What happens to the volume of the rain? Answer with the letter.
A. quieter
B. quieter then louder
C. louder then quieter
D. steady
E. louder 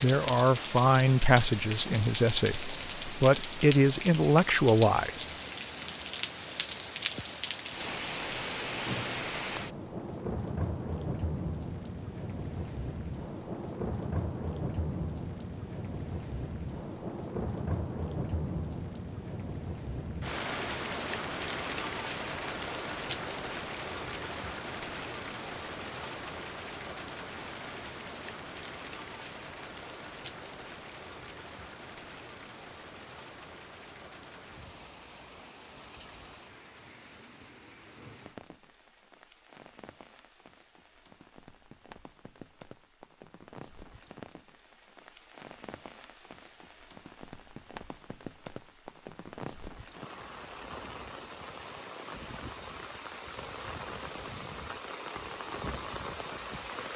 B.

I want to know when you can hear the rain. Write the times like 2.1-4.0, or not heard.
0.0-56.9.